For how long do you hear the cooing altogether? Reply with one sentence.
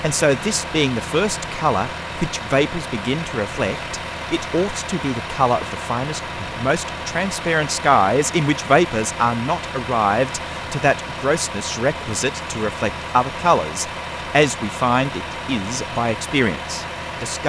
The cooing can't be heard in this clip.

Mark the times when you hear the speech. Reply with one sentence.
You can hear the speech from 0.0 to 17.4 s.